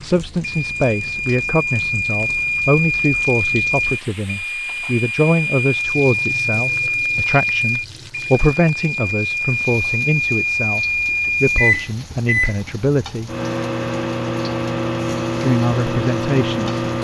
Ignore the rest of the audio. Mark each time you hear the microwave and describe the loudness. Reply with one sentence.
You can hear the microwave from 0.4 to 16.9 s, at a steady volume.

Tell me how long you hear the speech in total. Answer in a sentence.
You can hear the speech for 15 seconds altogether.